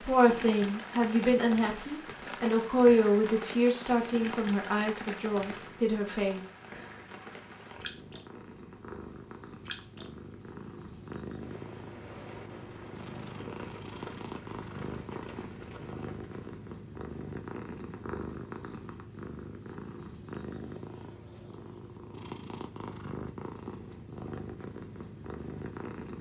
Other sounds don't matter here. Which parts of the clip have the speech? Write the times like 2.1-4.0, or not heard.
0.0-6.4.